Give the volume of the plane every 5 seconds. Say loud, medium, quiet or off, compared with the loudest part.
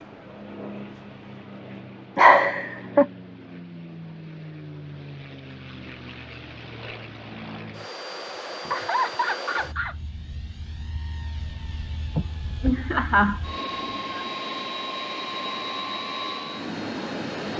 medium, medium, medium, loud.